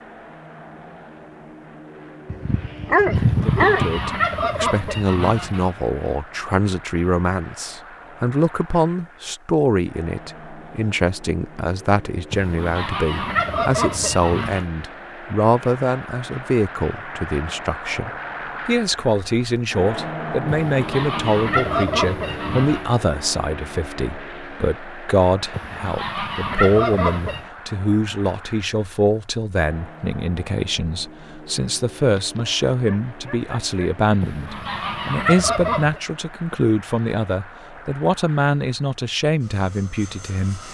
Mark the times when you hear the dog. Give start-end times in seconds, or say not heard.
2.3-4.0, 32.0-33.9.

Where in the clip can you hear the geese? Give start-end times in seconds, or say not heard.
3.1-5.8, 12.3-14.7, 20.4-22.9, 25.5-27.4, 34.2-36.0.